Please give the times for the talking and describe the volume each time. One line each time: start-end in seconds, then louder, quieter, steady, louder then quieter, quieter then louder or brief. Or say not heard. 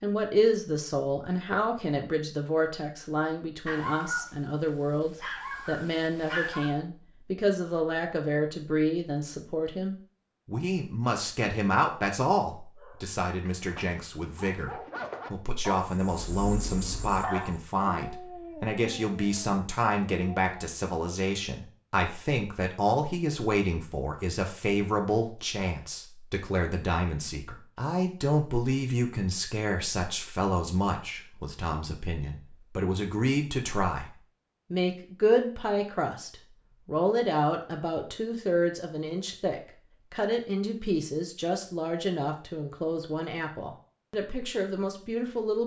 0.0-45.6 steady.